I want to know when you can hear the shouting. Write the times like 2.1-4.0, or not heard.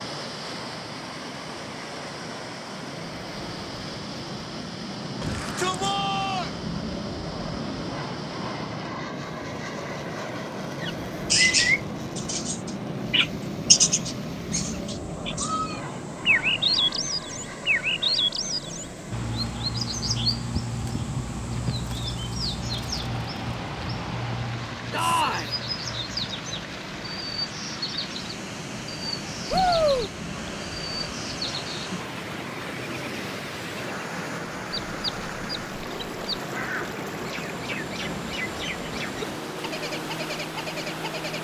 5.2-6.5, 24.9-25.6, 29.5-30.1.